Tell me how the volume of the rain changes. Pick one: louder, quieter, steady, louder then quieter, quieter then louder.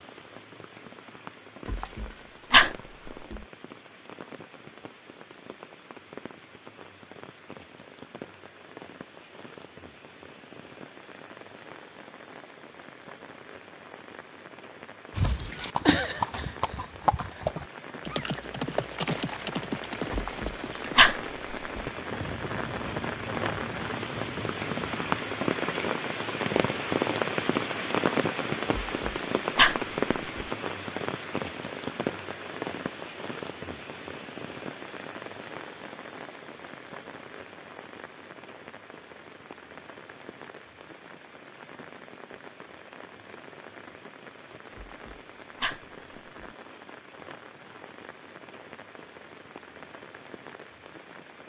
louder then quieter.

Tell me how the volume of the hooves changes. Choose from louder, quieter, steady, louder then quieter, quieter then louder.
quieter.